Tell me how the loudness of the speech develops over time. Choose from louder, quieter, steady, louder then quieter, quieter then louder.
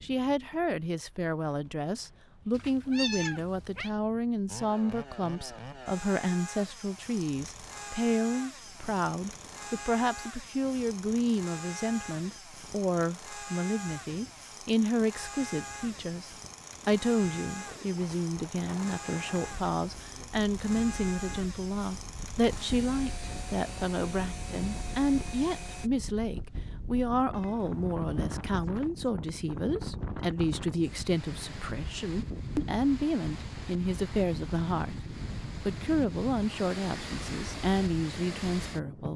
steady.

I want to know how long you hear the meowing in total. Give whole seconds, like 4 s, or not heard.
3 s.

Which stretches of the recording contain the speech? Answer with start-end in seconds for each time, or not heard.
0.0-35.0, 35.6-39.1.